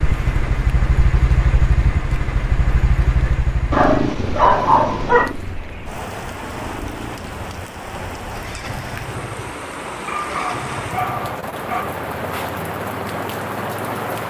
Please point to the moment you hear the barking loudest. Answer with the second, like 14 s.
5 s.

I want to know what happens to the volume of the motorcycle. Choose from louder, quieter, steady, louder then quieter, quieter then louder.
quieter.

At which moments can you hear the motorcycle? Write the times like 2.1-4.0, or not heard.
0.0-14.2.